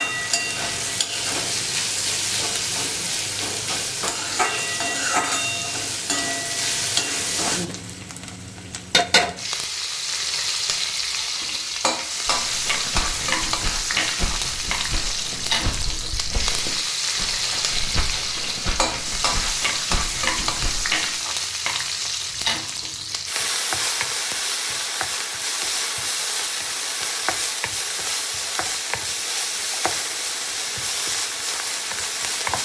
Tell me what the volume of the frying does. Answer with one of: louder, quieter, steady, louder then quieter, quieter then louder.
steady.